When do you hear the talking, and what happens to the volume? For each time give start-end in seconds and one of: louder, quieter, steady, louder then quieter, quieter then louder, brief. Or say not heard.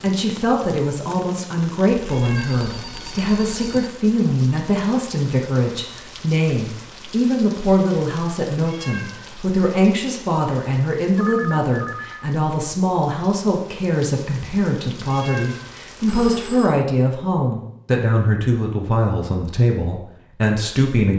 0.0-21.1 steady.